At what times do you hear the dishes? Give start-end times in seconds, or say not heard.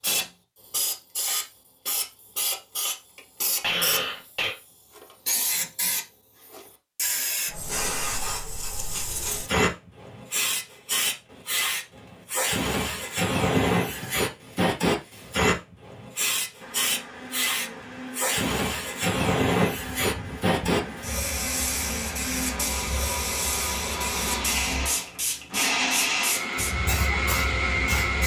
not heard.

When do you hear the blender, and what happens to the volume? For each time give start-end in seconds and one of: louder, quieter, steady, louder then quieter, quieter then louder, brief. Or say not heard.
16.6-28.2 louder.